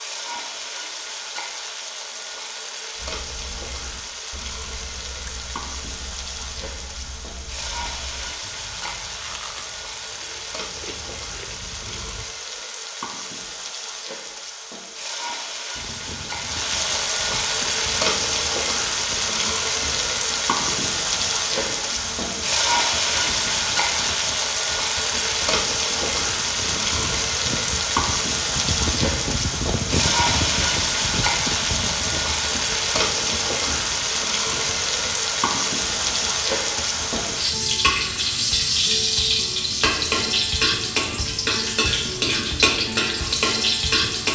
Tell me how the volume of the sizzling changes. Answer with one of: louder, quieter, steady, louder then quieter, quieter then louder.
louder.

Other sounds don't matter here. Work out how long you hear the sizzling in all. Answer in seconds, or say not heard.
44 s.